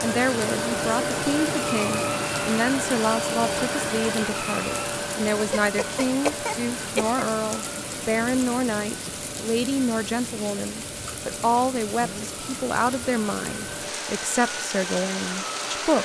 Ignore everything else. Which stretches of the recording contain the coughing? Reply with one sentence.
You can hear the coughing from 5.5 to 7.2 s.